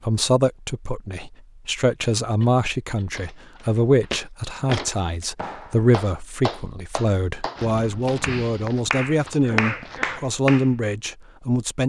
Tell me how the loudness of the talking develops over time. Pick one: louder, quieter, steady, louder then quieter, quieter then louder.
steady.